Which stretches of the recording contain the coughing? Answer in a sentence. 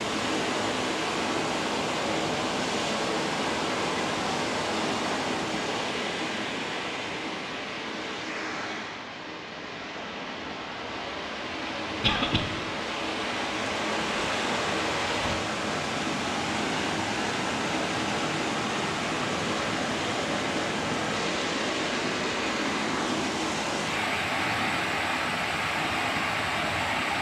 You can hear the coughing from 12.0 to 12.4 s.